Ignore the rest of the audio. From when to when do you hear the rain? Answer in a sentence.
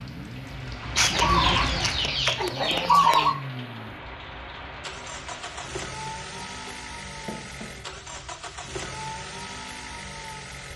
You can hear the rain from 0.0 to 5.9 s.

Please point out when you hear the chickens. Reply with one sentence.
The chickens can be heard from 0.9 to 3.4 s and from 6.0 to 8.0 s.